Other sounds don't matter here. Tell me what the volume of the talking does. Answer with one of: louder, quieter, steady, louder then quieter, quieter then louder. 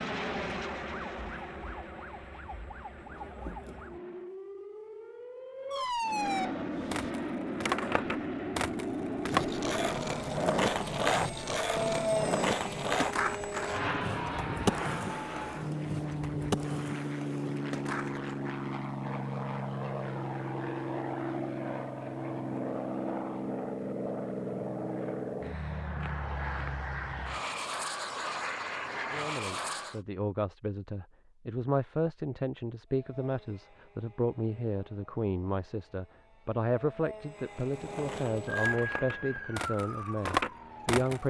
steady.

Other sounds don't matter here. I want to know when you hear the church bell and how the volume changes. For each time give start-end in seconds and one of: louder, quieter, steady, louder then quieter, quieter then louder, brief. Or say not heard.
not heard.